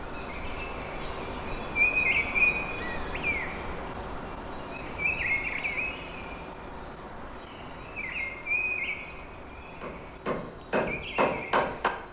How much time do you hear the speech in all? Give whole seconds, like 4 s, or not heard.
not heard.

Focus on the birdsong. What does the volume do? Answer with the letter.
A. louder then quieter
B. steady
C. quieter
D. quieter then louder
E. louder
C.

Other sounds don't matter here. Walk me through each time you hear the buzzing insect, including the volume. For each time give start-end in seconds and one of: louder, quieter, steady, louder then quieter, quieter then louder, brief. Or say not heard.
not heard.